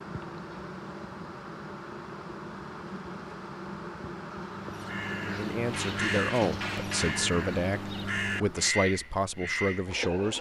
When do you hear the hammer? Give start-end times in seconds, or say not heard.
5.7-7.3.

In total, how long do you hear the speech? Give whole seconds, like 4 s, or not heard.
5 s.